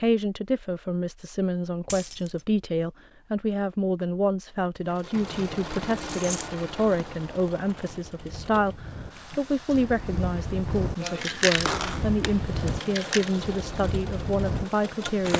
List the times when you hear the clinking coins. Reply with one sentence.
You can hear the clinking coins from 1.9 to 2.5 s, from 6.0 to 6.5 s and from 11.0 to 13.3 s.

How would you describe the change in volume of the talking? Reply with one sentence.
The loudness of the talking stays about the same.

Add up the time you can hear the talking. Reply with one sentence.
The talking can be heard for 15 seconds in total.